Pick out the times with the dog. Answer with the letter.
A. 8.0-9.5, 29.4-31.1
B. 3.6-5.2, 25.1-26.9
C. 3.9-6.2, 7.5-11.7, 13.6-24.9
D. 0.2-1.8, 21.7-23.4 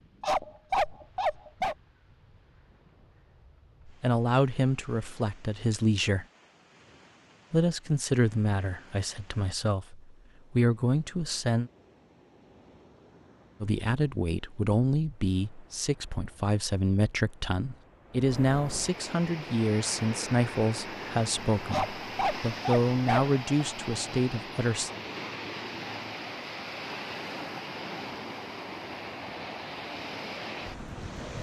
D.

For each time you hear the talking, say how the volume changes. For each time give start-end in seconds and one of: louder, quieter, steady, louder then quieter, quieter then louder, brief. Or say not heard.
3.9-6.2 brief
7.5-11.7 quieter then louder
13.6-24.9 steady.